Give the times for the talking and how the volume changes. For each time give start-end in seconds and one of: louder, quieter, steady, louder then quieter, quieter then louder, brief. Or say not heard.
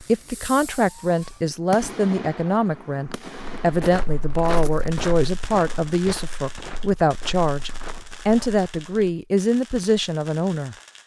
0.0-11.0 steady.